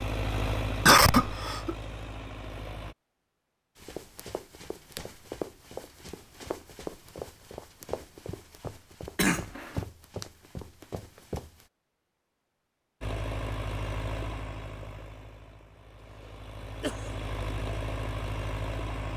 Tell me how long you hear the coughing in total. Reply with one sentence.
The coughing can be heard for 3 seconds in total.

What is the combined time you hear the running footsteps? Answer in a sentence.
You can hear the running footsteps for 8 seconds altogether.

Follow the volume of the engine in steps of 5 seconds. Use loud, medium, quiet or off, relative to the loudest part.
loud, off, loud, loud.